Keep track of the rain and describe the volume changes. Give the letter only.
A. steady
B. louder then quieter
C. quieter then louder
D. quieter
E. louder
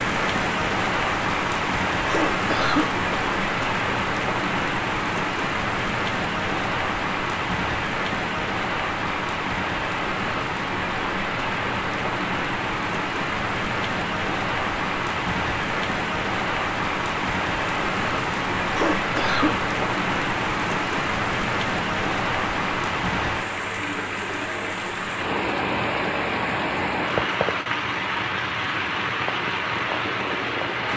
A.